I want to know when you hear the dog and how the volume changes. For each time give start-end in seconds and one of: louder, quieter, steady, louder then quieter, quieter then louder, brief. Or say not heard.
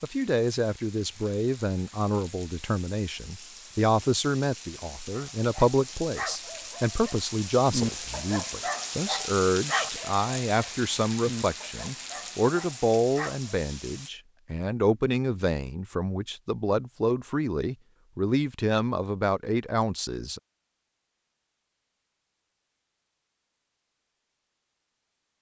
5.1-13.6 louder then quieter.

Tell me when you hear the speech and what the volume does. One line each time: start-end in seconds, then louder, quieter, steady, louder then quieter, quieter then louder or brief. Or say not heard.
0.0-20.4 steady.